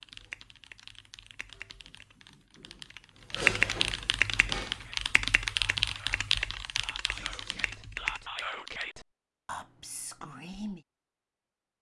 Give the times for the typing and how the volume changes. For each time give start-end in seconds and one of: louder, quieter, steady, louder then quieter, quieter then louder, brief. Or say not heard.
0.0-8.9 louder then quieter.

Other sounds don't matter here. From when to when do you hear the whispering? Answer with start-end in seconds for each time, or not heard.
4.2-10.8.